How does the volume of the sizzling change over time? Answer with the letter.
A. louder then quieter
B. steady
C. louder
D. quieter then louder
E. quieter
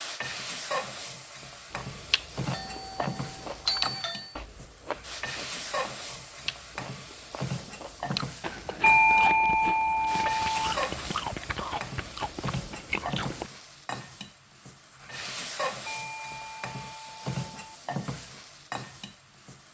B.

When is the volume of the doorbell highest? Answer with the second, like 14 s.
9 s.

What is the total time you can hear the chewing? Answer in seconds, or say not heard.
12 s.